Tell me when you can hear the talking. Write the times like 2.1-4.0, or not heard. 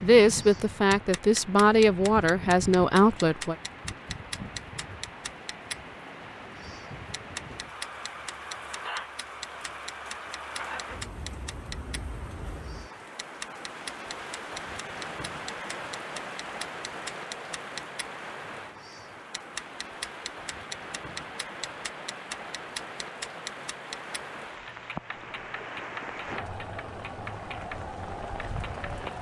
0.0-3.5.